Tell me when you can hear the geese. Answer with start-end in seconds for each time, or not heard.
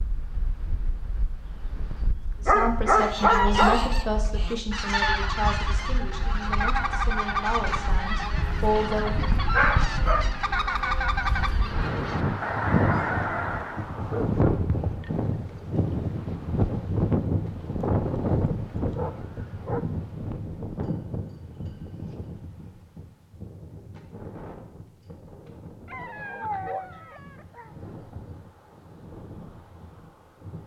3.0-13.9.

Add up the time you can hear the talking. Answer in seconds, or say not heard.
7 s.